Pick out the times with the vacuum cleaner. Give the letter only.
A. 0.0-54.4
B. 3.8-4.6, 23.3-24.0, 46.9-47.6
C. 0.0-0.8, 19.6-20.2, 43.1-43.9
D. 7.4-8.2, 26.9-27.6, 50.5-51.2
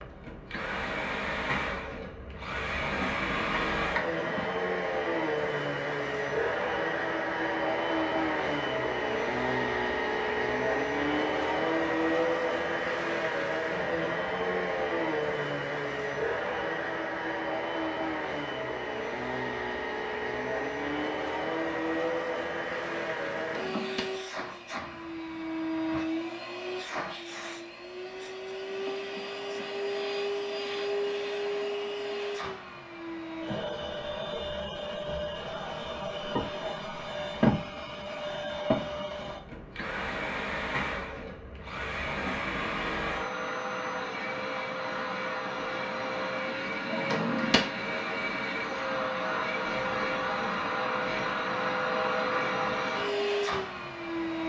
A.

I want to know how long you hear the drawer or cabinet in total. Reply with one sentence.
The drawer or cabinet can be heard for 2 seconds in total.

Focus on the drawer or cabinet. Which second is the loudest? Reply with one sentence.
The loudest moment of the drawer or cabinet is at 47 seconds.